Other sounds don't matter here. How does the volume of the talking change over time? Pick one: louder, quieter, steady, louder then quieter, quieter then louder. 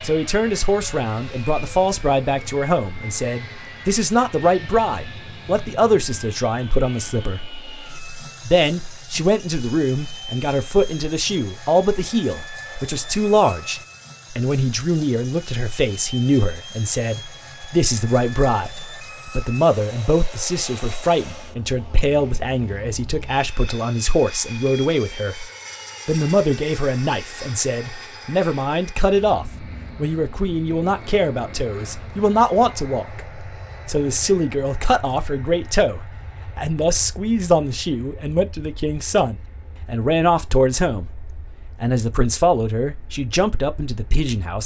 steady.